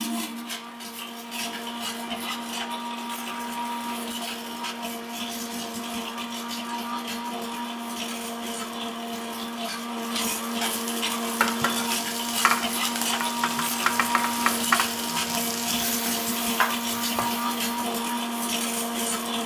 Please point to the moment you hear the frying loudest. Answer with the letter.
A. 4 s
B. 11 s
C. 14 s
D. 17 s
C.